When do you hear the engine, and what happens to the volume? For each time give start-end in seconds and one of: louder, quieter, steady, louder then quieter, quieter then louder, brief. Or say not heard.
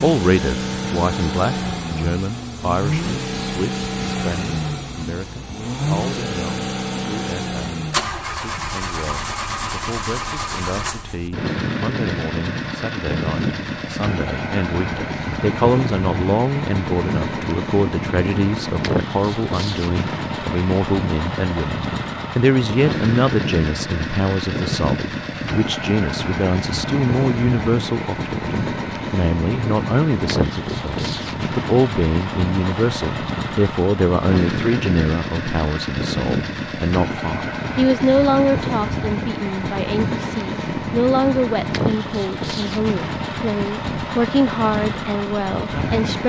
0.0-46.2 steady.